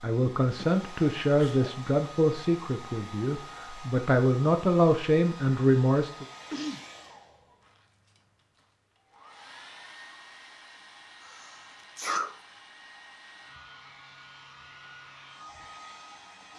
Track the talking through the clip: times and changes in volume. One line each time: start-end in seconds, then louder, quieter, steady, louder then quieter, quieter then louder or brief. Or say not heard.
0.0-6.2 quieter then louder.